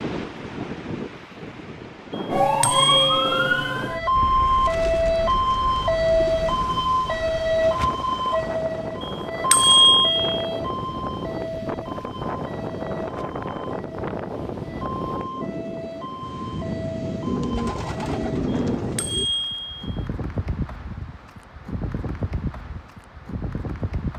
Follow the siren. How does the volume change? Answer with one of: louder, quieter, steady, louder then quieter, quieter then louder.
quieter.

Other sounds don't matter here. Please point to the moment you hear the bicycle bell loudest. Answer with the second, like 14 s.
10 s.